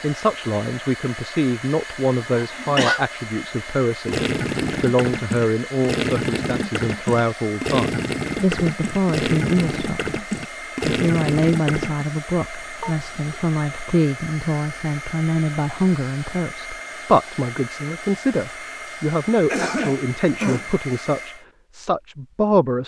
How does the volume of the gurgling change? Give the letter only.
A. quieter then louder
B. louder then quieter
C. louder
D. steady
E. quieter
D.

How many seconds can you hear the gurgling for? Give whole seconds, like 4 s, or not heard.
8 s.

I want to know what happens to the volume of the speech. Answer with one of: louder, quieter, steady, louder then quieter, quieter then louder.
steady.